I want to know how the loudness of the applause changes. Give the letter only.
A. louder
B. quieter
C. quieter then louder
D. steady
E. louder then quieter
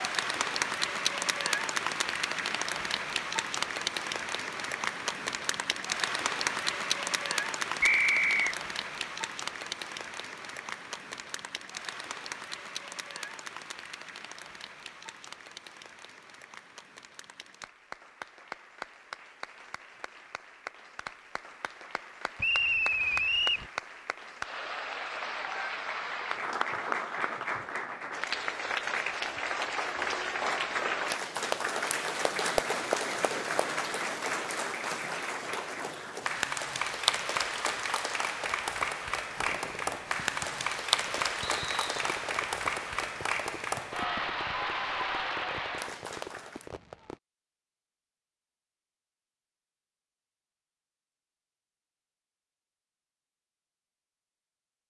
C.